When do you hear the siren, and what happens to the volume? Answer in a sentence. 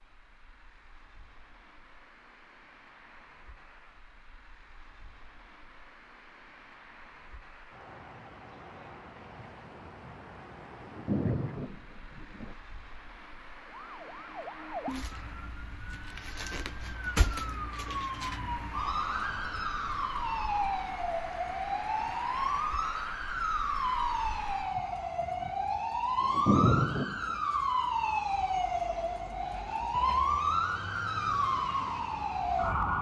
You can hear the siren from 13.6 to 32.9 s, getting louder.